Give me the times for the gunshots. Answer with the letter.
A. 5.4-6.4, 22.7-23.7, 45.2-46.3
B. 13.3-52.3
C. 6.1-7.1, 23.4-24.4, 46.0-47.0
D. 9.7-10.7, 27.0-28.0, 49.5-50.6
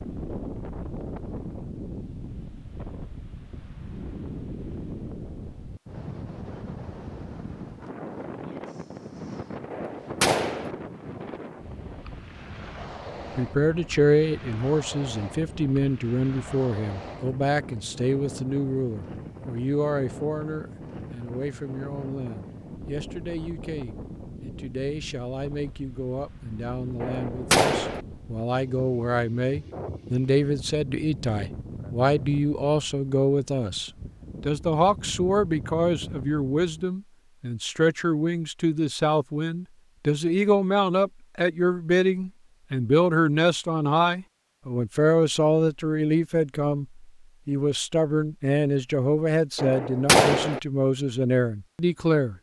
D.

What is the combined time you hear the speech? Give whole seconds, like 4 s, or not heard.
39 s.